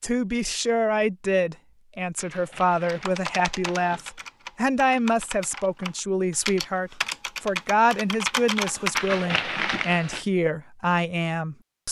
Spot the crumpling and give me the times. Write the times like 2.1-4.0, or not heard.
2.1-4.1, 8.9-10.2.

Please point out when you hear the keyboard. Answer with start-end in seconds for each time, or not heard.
2.9-9.0.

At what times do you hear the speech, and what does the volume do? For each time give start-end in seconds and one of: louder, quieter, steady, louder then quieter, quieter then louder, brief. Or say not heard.
0.0-11.8 steady.